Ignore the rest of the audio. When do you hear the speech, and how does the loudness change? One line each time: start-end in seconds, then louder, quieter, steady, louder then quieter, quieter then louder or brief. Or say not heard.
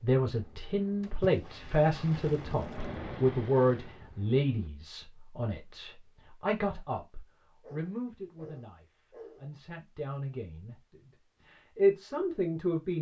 0.0-12.9 quieter then louder.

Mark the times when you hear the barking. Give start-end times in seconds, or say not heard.
7.6-9.5.